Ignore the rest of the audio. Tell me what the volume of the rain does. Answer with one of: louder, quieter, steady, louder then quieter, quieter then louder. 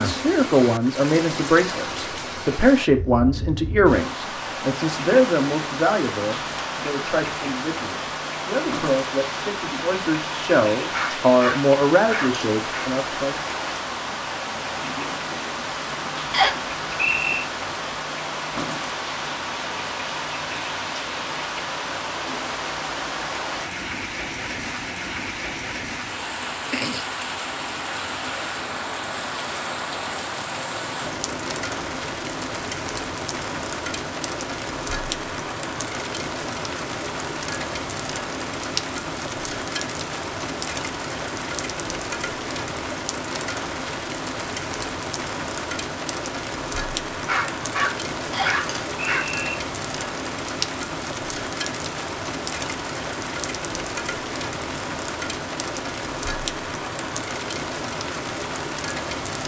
steady.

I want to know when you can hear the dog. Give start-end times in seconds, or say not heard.
10.9-12.9, 47.2-49.2.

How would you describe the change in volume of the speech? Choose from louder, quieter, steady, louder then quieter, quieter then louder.
quieter then louder.